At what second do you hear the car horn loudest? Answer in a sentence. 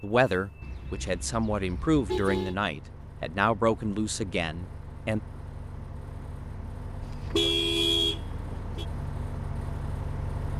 The loudest moment of the car horn is at 8 seconds.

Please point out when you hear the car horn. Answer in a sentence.
The car horn can be heard from 0.6 to 2.5 s and from 7.0 to 8.8 s.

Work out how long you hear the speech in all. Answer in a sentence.
You can hear the speech for 5 seconds altogether.